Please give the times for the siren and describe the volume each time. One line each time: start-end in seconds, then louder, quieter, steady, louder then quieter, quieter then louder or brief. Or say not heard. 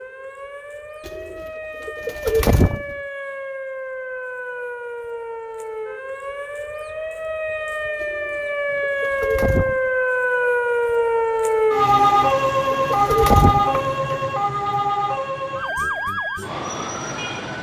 0.0-17.5 louder then quieter.